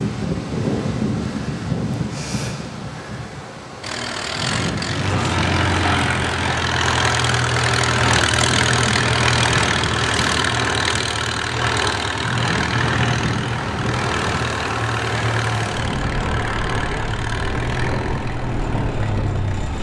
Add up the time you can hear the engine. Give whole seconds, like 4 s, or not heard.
16 s.